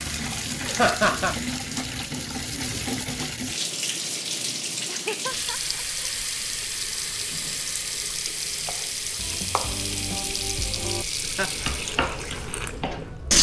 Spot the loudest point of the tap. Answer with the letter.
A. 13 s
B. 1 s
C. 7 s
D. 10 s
A.